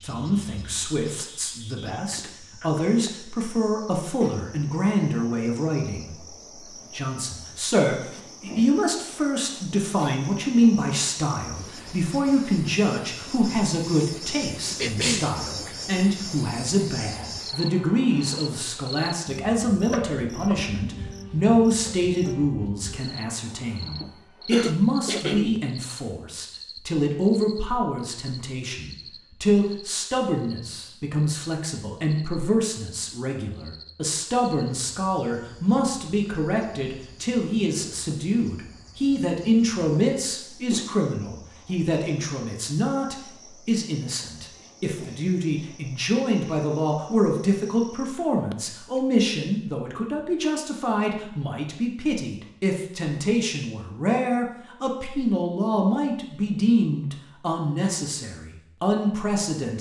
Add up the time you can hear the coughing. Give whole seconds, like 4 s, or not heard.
3 s.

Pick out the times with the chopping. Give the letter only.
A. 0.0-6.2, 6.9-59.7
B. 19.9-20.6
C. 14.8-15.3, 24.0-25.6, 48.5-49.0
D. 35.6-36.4
B.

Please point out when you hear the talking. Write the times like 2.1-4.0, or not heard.
0.0-6.2, 6.9-59.7.